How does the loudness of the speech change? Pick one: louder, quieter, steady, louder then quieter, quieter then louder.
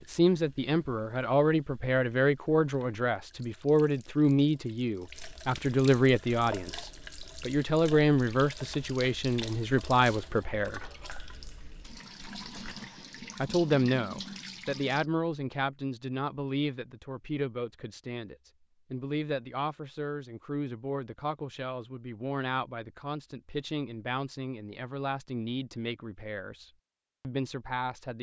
quieter.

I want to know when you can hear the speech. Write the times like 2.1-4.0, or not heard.
0.1-10.8, 13.3-28.1.